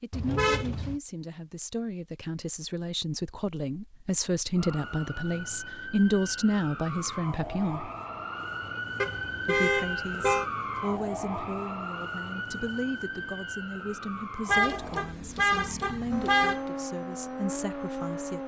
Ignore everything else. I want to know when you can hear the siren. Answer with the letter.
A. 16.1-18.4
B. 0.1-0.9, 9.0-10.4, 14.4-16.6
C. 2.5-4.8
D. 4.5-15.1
D.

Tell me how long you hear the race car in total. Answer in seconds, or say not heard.
2 s.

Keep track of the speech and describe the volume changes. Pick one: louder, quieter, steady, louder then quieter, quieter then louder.
louder then quieter.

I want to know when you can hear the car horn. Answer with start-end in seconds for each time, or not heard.
0.1-0.9, 9.0-10.4, 14.4-16.6.